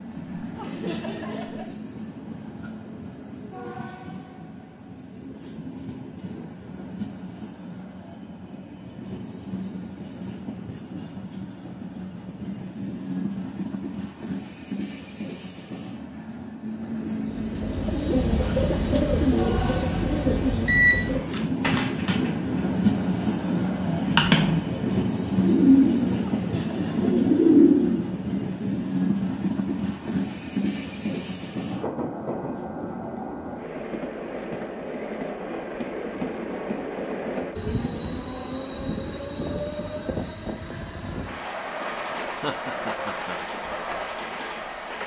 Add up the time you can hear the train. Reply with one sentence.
You can hear the train for 45 seconds altogether.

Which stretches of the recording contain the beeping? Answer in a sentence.
The beeping can be heard from 20.6 to 21.4 s.